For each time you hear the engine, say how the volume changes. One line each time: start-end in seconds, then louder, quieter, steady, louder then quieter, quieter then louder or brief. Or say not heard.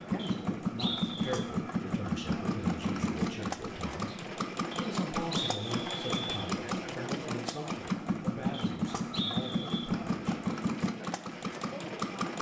0.0-12.3 steady.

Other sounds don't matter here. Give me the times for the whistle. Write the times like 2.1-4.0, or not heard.
0.1-1.4, 4.7-6.5, 8.5-9.9.